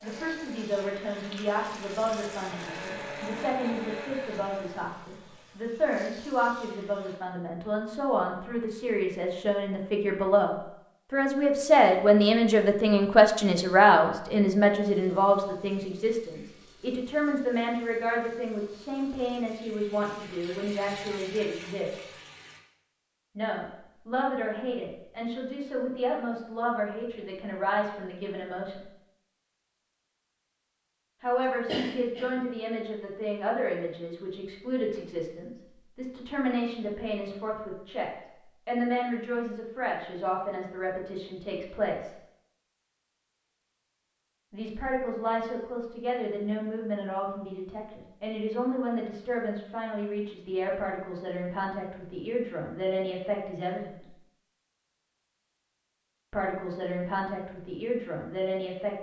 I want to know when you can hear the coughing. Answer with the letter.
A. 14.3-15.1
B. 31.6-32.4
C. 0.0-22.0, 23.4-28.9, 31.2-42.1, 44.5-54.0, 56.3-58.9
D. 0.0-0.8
B.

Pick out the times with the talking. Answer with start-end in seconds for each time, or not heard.
0.0-22.0, 23.4-28.9, 31.2-42.1, 44.5-54.0, 56.3-58.9.